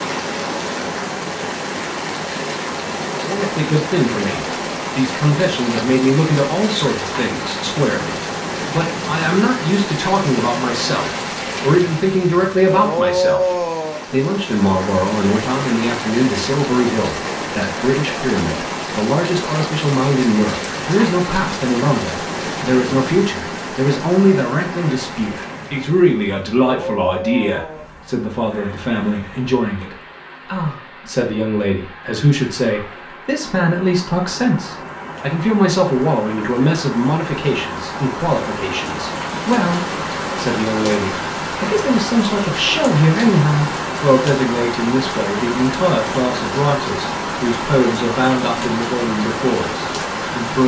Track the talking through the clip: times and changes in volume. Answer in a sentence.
The talking can be heard from 3.1 to 50.6 s, at a steady volume.